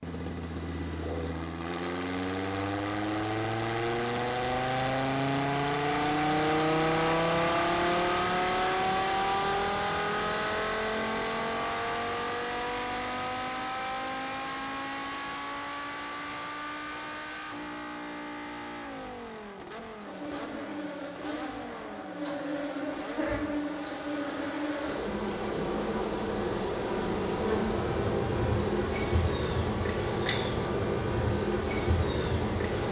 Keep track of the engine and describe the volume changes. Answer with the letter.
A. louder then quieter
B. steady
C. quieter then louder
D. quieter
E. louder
D.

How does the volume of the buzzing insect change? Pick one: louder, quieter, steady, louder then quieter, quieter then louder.
louder.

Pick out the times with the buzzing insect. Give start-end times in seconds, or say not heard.
20.0-32.8.